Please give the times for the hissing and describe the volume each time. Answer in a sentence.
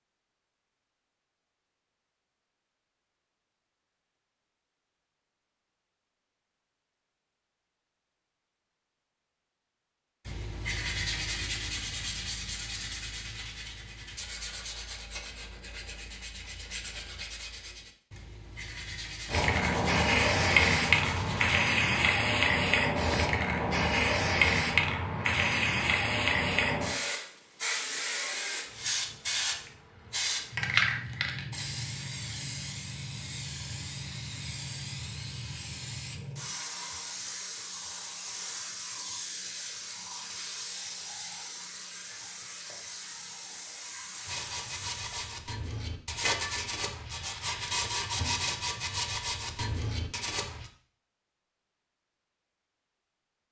You can hear the hissing from 19.2 to 45.4 s, getting quieter.